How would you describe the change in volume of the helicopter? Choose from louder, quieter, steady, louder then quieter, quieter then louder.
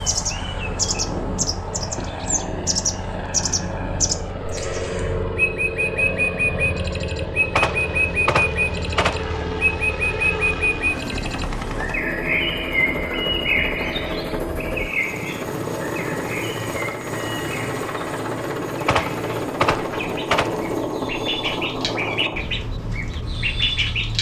steady.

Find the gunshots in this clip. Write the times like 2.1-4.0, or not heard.
7.5-9.4, 18.9-20.8.